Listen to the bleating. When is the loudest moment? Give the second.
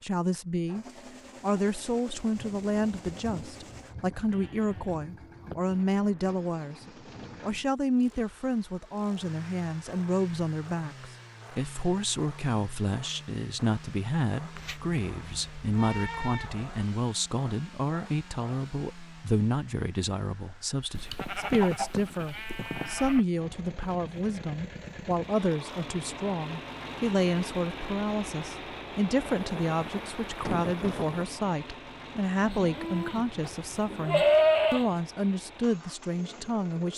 34 s.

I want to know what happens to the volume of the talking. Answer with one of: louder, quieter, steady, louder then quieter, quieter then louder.
steady.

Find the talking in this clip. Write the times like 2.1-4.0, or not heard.
0.0-6.8, 7.4-36.9.